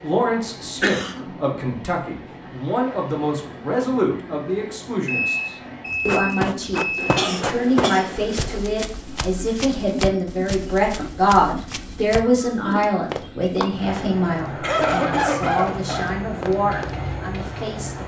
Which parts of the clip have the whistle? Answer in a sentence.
The whistle can't be heard in this clip.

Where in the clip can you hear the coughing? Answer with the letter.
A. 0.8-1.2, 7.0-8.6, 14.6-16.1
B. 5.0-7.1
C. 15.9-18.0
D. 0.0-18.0
A.